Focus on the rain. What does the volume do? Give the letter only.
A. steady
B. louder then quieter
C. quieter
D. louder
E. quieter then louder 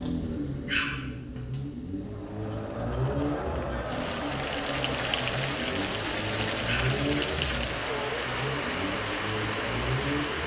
D.